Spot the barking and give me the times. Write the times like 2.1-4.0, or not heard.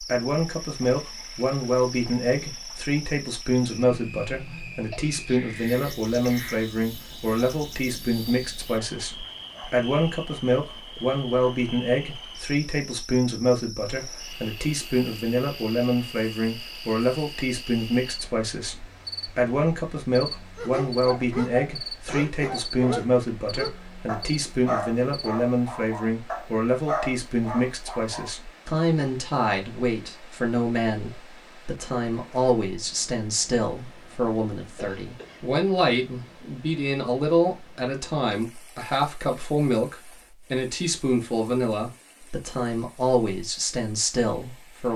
20.6-28.3.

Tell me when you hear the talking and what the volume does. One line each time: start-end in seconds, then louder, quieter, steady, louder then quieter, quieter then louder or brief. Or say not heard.
0.0-44.9 steady.